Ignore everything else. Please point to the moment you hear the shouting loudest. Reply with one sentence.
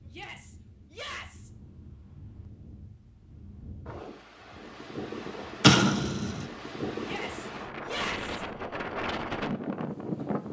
The loudest moment of the shouting is at 8 seconds.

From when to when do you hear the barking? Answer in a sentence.
You can't hear the barking here.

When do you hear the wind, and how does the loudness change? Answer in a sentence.
The wind can be heard from 0.0 to 10.4 s, getting louder.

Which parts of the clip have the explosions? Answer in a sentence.
The explosions can be heard from 5.6 to 6.5 s.